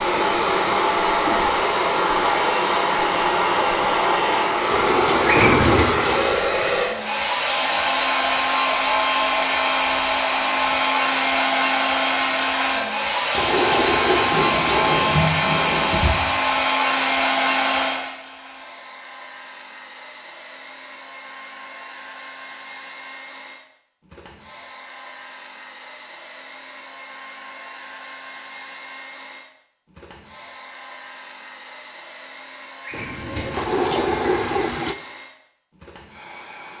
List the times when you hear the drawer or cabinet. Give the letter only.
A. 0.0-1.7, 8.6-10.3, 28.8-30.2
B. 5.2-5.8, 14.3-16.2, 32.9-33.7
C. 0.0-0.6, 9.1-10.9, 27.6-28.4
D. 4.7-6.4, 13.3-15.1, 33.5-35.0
B.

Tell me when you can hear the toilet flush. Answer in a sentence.
You can hear the toilet flush from 4.7 to 6.4 s, from 13.3 to 15.1 s and from 33.5 to 35.0 s.